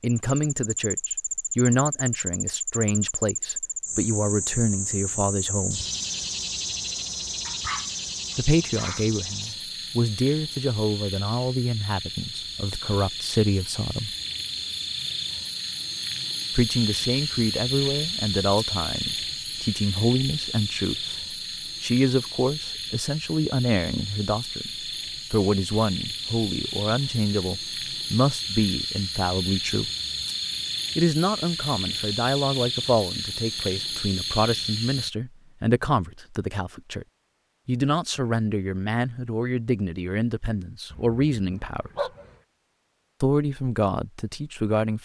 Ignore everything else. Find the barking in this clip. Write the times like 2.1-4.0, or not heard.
7.5-9.1, 40.9-42.3.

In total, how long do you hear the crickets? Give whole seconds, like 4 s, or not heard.
35 s.